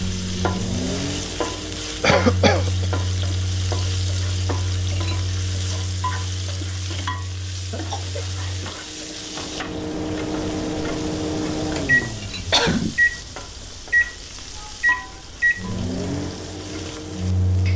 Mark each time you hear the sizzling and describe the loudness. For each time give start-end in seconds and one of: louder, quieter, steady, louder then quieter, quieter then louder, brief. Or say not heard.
0.0-17.7 quieter.